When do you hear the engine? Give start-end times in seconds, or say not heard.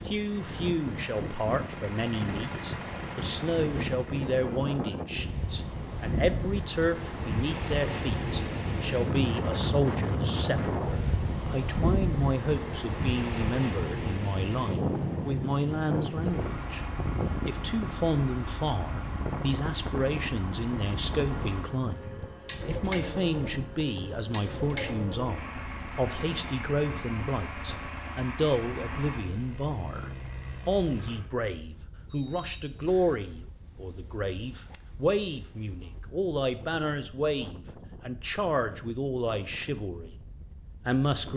0.0-4.7, 16.1-31.2.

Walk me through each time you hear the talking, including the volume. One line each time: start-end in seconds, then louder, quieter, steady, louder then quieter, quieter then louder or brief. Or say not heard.
0.0-40.1 steady
40.9-41.3 brief.